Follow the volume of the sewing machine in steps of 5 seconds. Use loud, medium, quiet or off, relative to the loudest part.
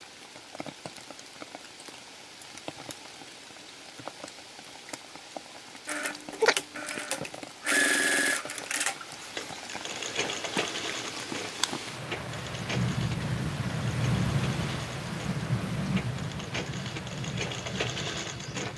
off, loud, medium, medium.